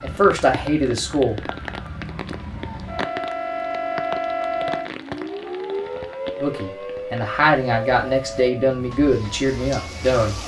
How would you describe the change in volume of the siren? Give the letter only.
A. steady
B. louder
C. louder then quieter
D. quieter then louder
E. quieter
C.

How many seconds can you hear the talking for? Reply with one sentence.
The talking can be heard for 5 seconds in total.